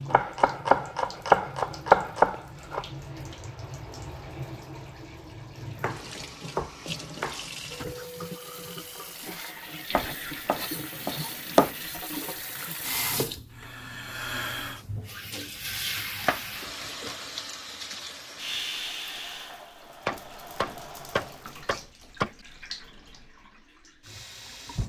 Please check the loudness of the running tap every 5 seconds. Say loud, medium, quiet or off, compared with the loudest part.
medium, loud, loud, loud, medium.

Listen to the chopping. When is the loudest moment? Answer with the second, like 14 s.
2 s.